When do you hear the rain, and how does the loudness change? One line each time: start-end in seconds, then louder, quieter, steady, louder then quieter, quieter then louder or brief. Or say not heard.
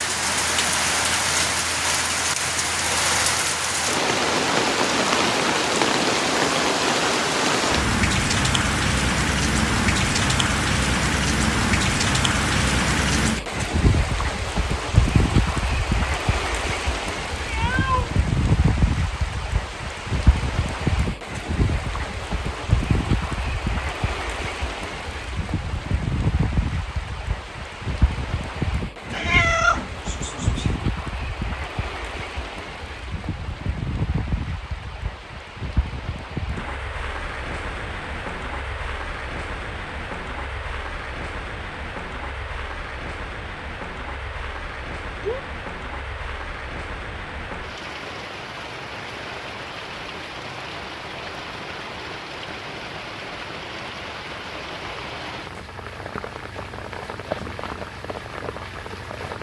0.0-59.3 quieter.